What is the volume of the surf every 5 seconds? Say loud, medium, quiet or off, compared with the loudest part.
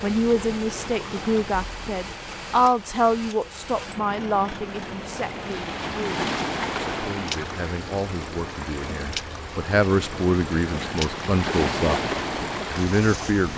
medium, loud, loud.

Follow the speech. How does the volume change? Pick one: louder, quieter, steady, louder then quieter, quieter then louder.
quieter then louder.